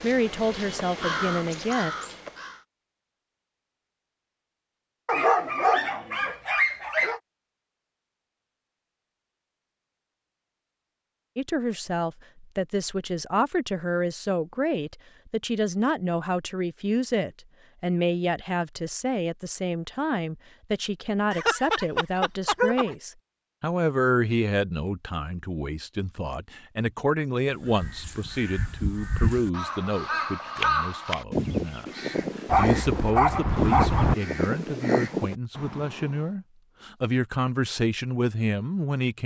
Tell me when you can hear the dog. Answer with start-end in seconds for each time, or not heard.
5.0-7.2, 21.3-22.9, 32.5-34.1.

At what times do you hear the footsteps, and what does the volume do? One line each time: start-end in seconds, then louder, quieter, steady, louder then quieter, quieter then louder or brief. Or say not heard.
not heard.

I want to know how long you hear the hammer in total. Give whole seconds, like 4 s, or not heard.
not heard.